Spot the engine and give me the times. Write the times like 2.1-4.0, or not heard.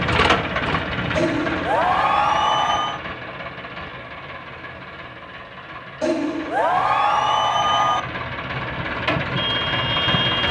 0.0-10.4.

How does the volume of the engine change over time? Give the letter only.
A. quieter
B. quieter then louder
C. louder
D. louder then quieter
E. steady
B.